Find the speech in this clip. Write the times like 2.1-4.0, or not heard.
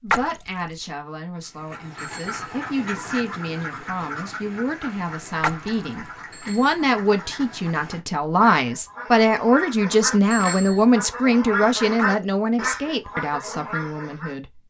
0.0-14.6.